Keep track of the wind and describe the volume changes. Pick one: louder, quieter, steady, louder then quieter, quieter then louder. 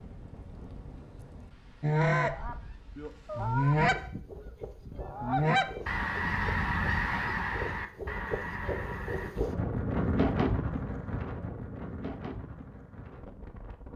louder then quieter.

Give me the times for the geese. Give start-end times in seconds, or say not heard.
1.8-9.3.